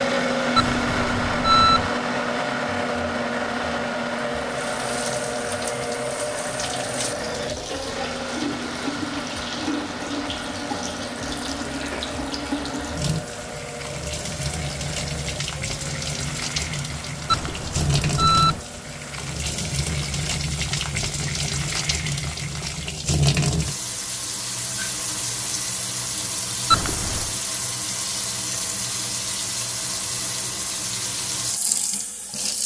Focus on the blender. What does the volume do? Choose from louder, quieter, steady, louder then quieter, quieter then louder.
quieter.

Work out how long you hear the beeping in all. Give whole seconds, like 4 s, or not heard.
3 s.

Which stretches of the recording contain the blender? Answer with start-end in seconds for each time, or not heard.
0.0-20.4.